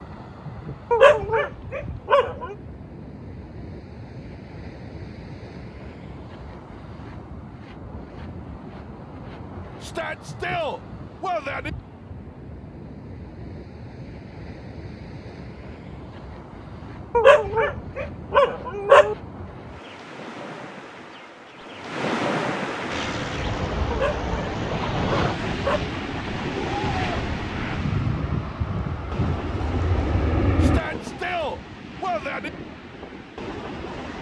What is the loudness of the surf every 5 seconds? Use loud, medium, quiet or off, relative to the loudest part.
medium, medium, medium, medium, loud, loud, medium.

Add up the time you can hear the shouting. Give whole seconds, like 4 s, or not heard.
4 s.